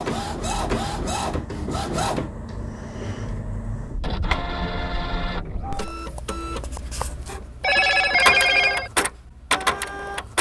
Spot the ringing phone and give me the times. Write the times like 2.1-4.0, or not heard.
7.6-8.9.